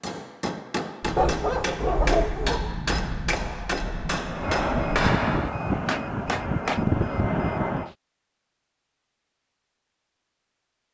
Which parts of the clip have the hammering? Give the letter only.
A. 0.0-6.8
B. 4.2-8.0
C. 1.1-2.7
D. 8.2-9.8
A.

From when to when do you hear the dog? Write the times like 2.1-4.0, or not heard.
1.1-2.7.